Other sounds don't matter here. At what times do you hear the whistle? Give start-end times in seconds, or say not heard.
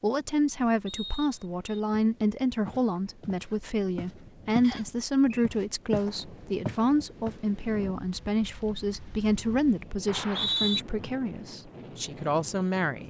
0.8-1.8, 4.6-5.5, 10.1-10.8.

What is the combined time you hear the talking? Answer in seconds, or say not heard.
13 s.